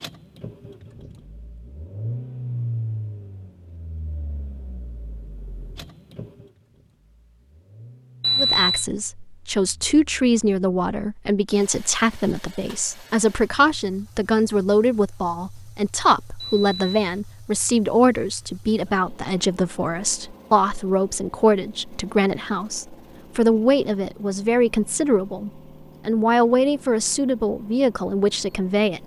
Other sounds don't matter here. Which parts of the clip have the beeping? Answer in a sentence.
You can hear the beeping from 8.2 to 8.8 s and from 16.4 to 17.2 s.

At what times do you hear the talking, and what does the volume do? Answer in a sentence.
The talking can be heard from 8.3 to 29.0 s, at a steady volume.